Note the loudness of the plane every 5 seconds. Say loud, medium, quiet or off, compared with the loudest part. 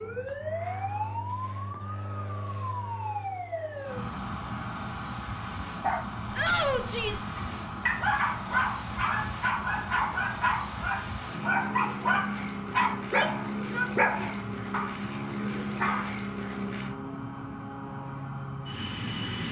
medium, medium, loud, loud.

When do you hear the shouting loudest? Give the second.
7 s.